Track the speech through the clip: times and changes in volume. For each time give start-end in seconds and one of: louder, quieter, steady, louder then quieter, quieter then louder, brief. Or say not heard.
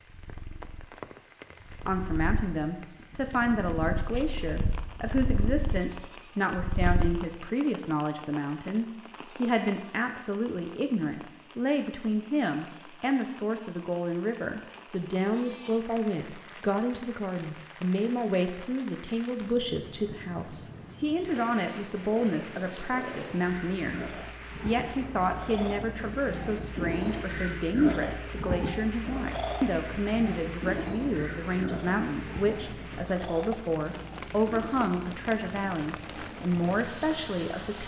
1.7-37.8 steady.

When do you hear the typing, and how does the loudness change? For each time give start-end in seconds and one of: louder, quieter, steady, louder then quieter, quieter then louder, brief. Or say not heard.
not heard.